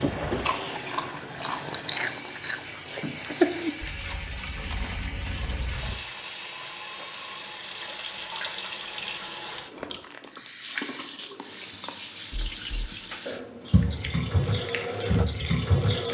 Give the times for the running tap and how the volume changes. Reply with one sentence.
You can hear the running tap from 0.0 to 16.1 s, getting louder.